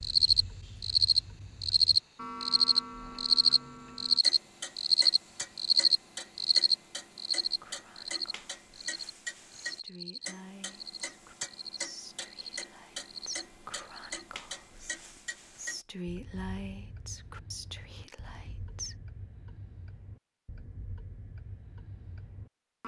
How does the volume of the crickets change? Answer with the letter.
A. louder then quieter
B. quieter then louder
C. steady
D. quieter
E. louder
D.